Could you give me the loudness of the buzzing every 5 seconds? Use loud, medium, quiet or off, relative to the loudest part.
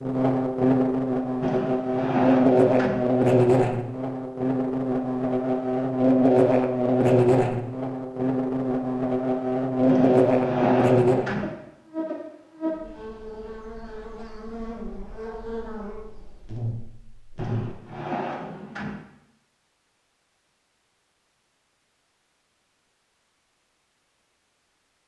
loud, loud, loud, quiet, off.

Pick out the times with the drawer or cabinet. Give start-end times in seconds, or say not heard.
1.4-3.0, 9.8-11.6, 17.4-19.1.